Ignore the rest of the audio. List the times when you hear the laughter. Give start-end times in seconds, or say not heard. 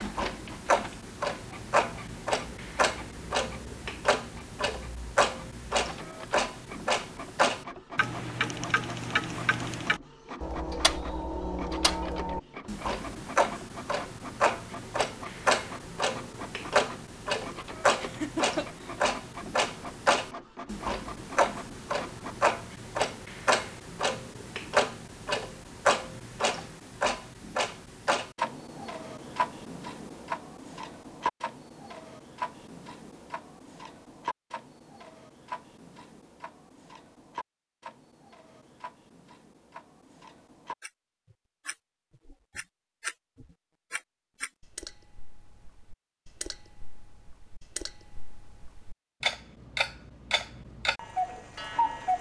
18.0-19.1.